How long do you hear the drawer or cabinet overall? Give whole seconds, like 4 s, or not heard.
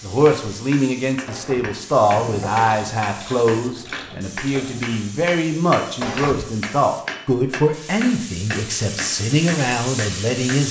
2 s.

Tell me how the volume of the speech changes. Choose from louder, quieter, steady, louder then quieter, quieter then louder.
steady.